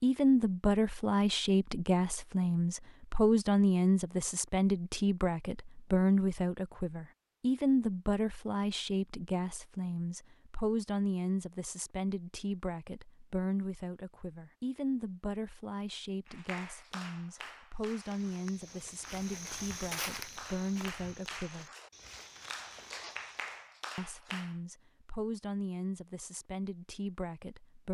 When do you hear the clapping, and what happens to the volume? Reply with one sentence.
The clapping can be heard from 16.2 to 24.6 s, getting quieter then louder.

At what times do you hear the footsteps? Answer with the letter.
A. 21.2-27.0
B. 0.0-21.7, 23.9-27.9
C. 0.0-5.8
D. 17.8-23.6
D.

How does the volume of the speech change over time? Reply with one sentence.
The loudness of the speech goes down.